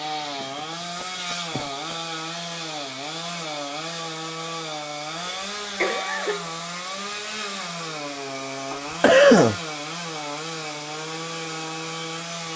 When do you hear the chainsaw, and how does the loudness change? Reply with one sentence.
The chainsaw can be heard from 0.0 to 12.5 s, at a steady volume.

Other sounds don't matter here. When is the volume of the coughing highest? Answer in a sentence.
The loudest moment of the coughing is at 9 seconds.